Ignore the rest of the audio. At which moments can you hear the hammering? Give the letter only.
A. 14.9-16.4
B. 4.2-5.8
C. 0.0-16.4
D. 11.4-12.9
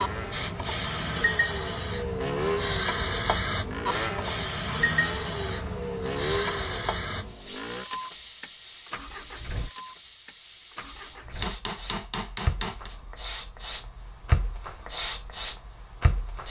D.